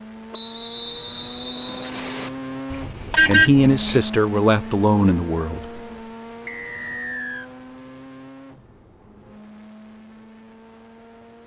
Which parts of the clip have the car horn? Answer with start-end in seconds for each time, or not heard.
2.7-4.0.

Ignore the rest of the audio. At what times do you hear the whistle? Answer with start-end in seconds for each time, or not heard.
0.3-2.3, 6.5-7.5.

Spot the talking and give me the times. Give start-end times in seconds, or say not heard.
3.2-5.8.